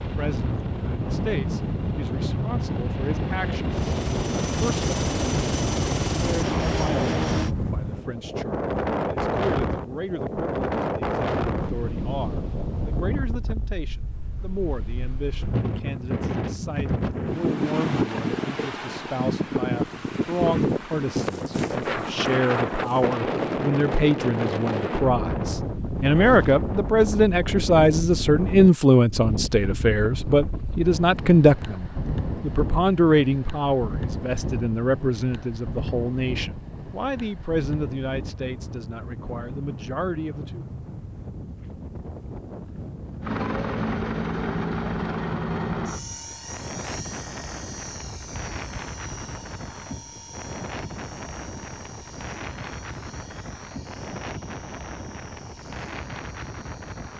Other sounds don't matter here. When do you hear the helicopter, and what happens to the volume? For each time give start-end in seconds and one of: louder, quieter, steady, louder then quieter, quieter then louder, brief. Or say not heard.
0.0-7.5 louder
43.2-57.1 quieter.